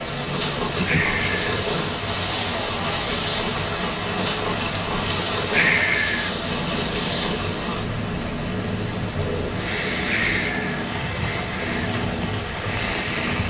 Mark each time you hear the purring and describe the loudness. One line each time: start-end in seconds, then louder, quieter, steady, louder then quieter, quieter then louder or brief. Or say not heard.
0.0-13.4 steady.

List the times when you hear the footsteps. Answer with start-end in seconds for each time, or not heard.
not heard.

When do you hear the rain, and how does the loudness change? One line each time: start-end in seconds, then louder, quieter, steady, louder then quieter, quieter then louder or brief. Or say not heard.
0.0-13.4 steady.